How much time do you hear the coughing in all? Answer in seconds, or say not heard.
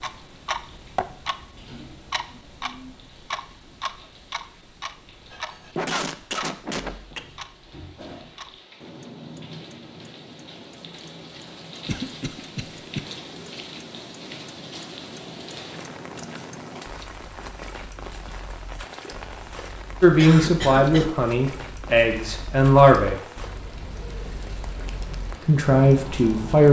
4 s.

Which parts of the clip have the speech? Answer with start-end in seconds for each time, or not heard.
20.0-23.1, 25.4-26.6.